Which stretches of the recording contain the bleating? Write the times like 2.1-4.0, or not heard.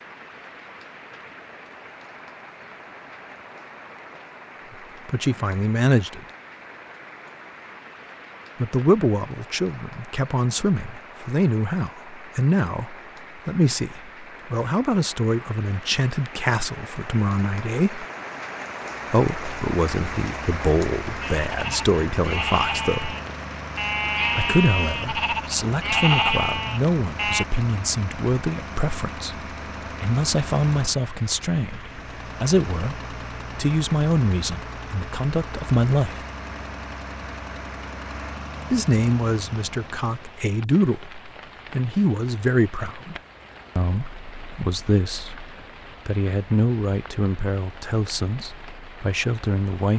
21.2-27.4.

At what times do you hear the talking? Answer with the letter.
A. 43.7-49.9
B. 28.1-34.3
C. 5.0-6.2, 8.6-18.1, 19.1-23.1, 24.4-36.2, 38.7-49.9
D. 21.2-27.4
C.